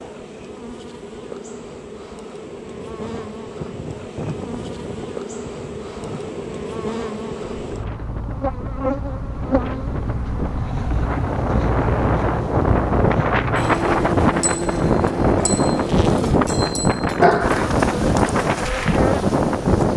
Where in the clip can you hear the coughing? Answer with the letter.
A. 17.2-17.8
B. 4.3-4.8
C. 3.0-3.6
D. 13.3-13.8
A.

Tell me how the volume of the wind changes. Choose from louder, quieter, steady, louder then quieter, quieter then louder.
louder.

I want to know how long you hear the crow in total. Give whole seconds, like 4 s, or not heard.
not heard.